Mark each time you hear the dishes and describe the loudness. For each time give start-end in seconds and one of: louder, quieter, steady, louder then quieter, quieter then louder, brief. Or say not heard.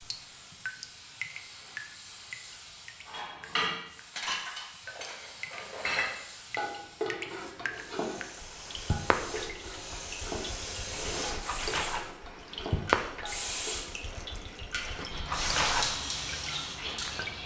3.1-13.8 quieter.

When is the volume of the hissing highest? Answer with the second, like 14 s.
16 s.